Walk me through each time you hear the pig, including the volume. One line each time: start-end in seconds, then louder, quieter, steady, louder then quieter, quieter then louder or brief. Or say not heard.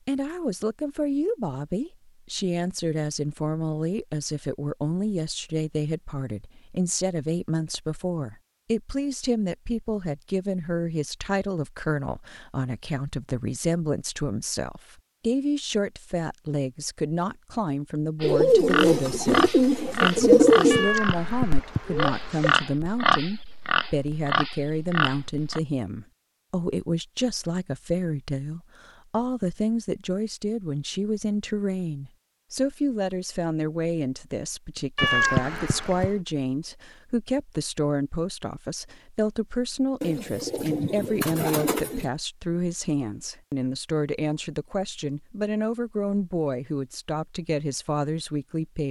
18.2-25.6 steady.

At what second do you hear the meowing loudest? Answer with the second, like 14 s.
35 s.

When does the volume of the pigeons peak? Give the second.
20 s.